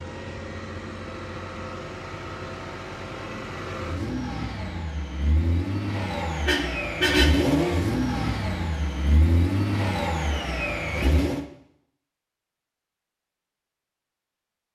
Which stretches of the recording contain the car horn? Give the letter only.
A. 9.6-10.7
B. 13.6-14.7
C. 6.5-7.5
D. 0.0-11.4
C.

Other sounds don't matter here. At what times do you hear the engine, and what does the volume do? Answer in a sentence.
The engine can be heard from 0.0 to 11.4 s, getting louder.